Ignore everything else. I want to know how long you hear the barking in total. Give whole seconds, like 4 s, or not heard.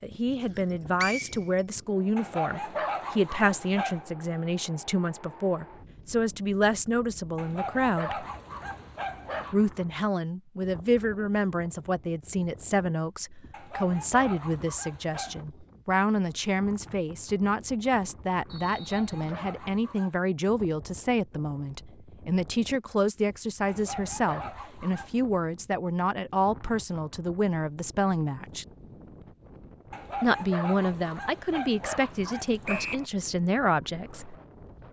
12 s.